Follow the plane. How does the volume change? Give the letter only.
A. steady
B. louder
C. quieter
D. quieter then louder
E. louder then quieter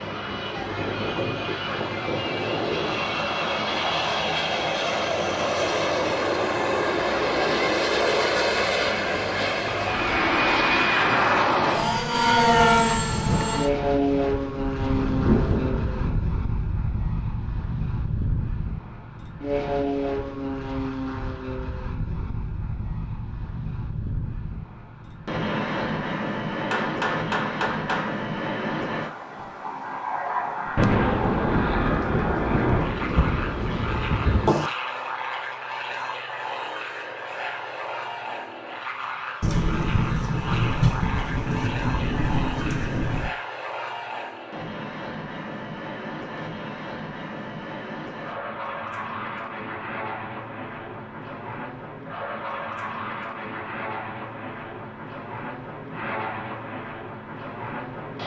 C.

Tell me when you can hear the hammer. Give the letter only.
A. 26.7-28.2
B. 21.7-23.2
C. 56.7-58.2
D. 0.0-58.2
A.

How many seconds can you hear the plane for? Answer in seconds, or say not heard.
58 s.